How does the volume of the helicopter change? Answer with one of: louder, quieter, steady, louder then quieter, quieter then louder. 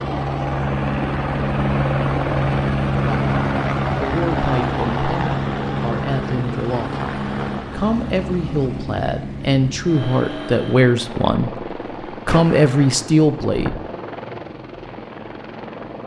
quieter.